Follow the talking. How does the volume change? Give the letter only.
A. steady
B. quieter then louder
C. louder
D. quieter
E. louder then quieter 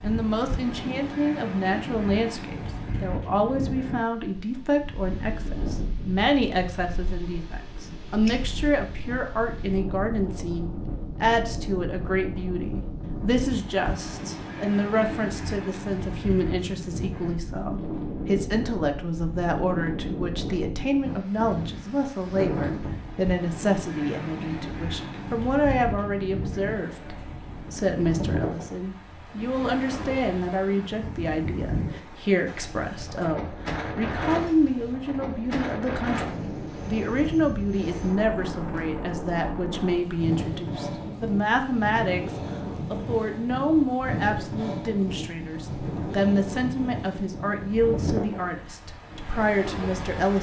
A.